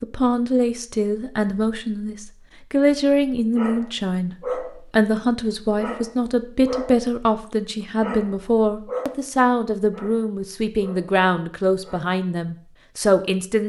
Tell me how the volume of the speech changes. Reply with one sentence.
The loudness of the speech stays about the same.